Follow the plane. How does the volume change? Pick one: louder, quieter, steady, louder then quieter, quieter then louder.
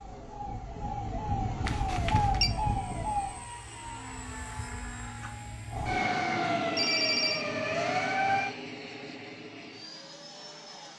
louder then quieter.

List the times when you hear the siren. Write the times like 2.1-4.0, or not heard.
0.0-3.5, 5.7-8.6.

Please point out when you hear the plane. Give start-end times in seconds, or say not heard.
2.5-10.9.